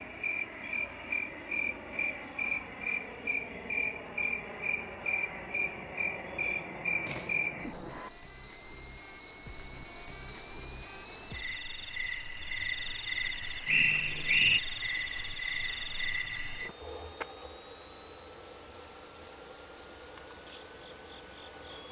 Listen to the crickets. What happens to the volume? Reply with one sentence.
The loudness of the crickets goes up.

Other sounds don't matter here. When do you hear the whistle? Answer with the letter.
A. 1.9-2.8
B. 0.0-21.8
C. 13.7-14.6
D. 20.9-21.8
C.